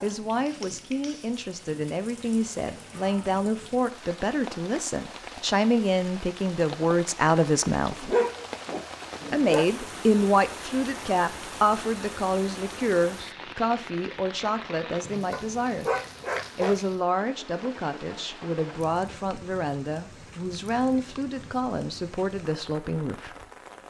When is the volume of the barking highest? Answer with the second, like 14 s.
8 s.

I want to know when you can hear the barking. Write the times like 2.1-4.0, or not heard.
7.8-9.7, 15.3-16.8.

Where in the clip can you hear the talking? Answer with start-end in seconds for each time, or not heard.
0.0-8.1, 9.3-15.8, 16.6-23.4.